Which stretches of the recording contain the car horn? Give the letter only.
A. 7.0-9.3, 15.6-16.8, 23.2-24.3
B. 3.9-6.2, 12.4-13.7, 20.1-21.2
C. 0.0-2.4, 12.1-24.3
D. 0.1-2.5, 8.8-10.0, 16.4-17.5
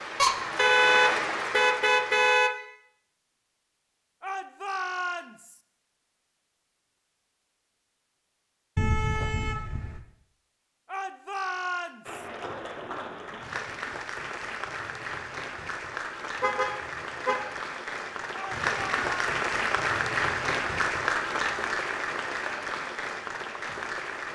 D.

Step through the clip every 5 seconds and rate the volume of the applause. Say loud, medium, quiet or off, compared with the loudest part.
loud, off, medium, loud, loud.